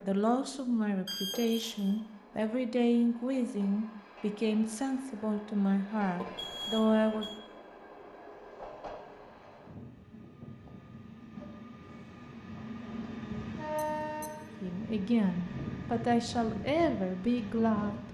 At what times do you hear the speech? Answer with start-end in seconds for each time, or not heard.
0.0-7.3, 14.6-18.0.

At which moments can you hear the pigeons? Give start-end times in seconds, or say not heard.
not heard.